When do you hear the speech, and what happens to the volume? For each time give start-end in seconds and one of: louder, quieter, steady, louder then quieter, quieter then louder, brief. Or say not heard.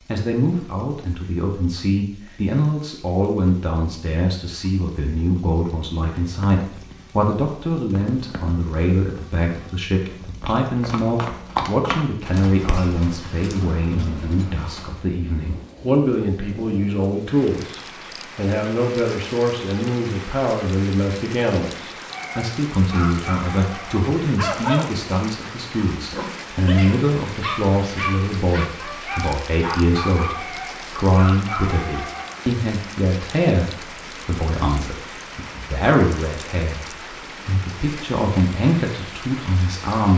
0.1-40.1 steady.